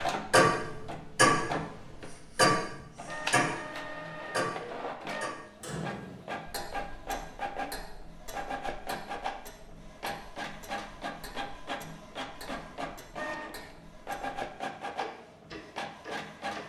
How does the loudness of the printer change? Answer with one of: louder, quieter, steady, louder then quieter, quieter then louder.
steady.